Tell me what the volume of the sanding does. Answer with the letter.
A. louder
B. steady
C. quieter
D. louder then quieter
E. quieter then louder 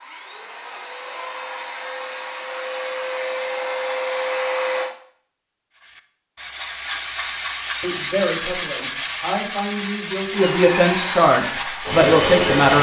B.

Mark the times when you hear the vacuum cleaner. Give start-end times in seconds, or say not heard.
0.0-4.9, 10.3-12.7.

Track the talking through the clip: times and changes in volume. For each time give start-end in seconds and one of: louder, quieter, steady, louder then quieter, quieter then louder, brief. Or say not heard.
7.8-12.7 louder.